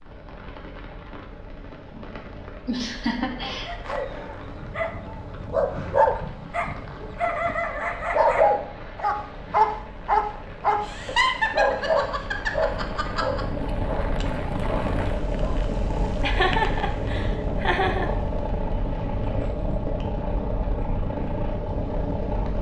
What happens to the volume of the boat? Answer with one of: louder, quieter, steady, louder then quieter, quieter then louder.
louder.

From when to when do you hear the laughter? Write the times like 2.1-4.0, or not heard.
2.6-3.7, 10.8-13.4, 16.2-18.1.